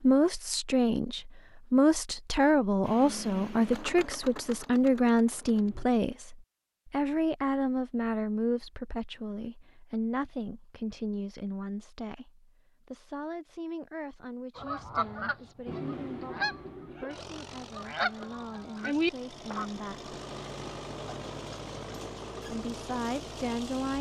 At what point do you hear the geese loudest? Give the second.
19 s.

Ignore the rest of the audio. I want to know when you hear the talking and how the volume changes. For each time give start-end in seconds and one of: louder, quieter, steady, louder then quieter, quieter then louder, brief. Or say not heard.
0.0-20.1 quieter
22.4-23.9 brief.